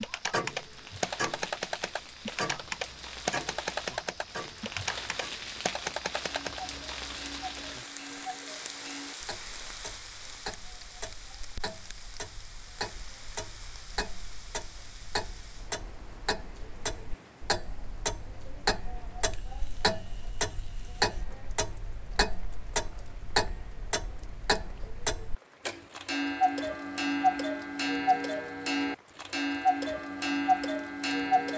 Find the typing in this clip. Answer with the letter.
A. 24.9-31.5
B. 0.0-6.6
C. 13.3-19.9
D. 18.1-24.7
B.